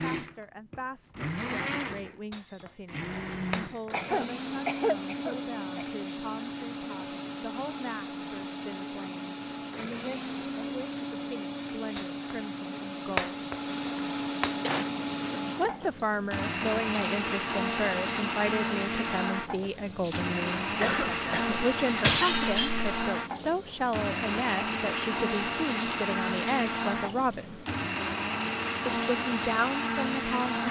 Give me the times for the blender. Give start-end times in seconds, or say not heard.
0.0-30.6.